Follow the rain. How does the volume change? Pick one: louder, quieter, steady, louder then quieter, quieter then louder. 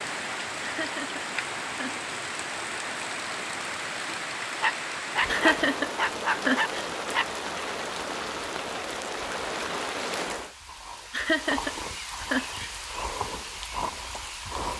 steady.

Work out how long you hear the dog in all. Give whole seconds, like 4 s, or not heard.
3 s.